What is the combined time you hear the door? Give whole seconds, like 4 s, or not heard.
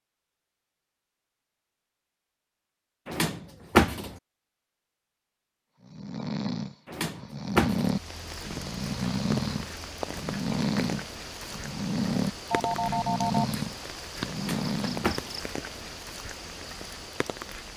3 s.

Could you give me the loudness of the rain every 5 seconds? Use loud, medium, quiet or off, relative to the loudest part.
off, loud, loud, loud.